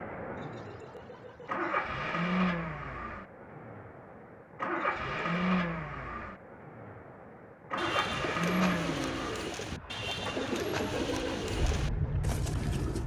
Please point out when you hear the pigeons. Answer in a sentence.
The pigeons can be heard from 7.8 to 13.0 s.